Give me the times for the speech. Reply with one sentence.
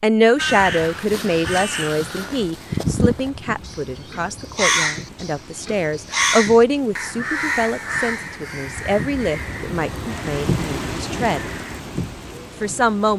You can hear the speech from 0.0 to 11.4 s and from 12.6 to 13.1 s.